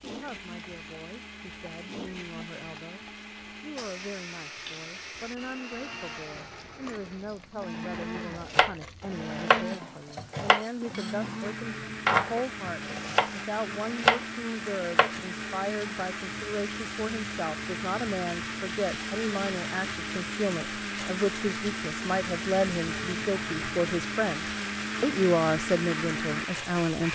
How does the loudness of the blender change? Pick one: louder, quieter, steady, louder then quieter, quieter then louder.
louder.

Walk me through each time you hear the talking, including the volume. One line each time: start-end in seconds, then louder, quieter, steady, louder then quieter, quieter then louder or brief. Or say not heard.
0.0-27.1 louder.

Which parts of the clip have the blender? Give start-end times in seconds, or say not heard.
0.0-27.1.